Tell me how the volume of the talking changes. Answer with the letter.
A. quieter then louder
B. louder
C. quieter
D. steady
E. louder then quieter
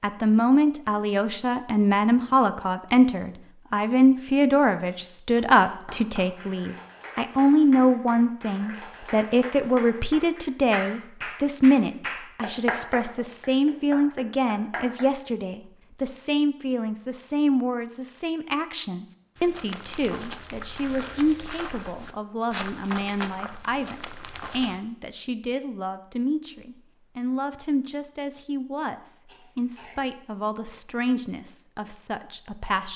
C.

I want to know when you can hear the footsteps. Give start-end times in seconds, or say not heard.
19.4-24.8.